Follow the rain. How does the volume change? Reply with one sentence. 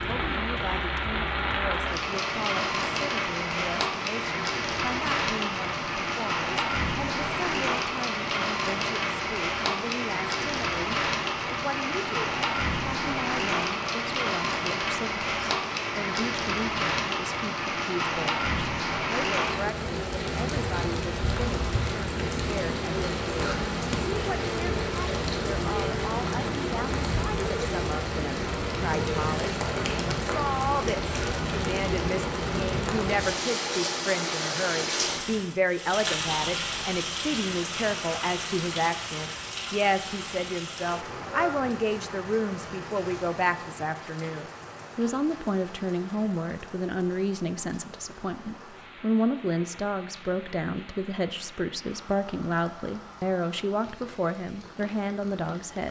The volume of the rain goes down.